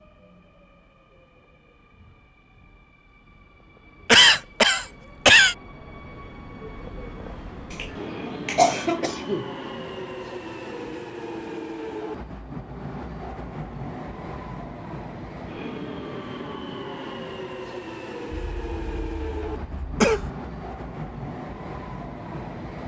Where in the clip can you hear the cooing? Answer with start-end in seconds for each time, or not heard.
not heard.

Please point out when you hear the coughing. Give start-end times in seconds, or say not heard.
4.0-5.5, 8.4-9.4, 18.3-20.3.